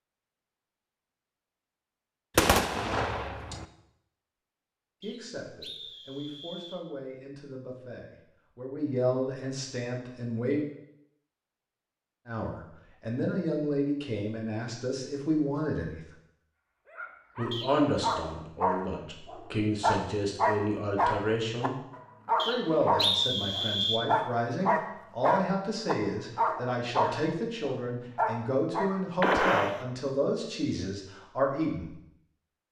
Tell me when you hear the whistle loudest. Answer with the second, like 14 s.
23 s.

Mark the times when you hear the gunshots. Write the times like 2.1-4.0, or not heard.
2.4-3.6, 29.2-29.8.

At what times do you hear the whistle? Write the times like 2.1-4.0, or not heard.
5.0-6.8, 17.5-17.9, 22.4-24.0.